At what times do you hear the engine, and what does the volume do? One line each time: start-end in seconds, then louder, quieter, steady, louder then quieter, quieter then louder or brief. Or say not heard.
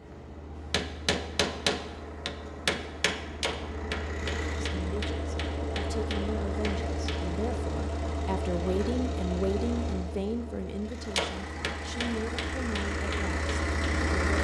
0.0-14.3 louder.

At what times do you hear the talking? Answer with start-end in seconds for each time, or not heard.
4.6-14.3.